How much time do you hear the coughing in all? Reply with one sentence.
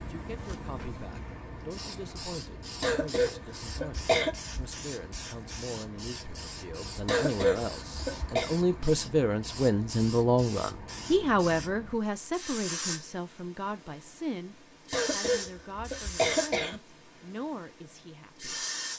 The coughing can be heard for 5 seconds in total.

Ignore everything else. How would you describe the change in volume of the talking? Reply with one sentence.
The volume of the talking goes up, then down.